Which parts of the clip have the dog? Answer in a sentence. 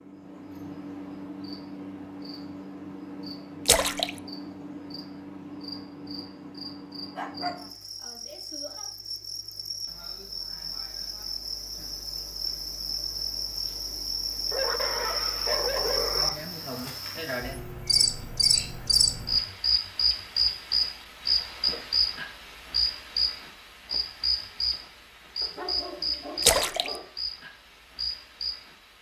You can hear the dog from 7.2 to 7.7 s, from 14.5 to 16.4 s and from 25.4 to 27.1 s.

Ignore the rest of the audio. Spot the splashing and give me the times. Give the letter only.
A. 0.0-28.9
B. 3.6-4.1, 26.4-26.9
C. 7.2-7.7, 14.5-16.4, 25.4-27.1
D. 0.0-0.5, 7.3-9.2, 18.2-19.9
B.